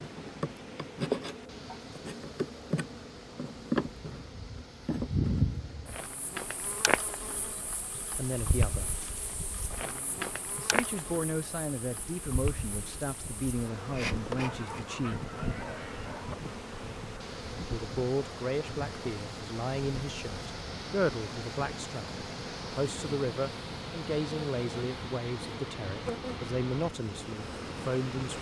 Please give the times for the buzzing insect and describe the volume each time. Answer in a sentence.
You can hear the buzzing insect from 0.0 to 28.3 s, getting quieter.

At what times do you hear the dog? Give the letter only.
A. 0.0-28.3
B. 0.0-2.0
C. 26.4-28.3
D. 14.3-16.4
D.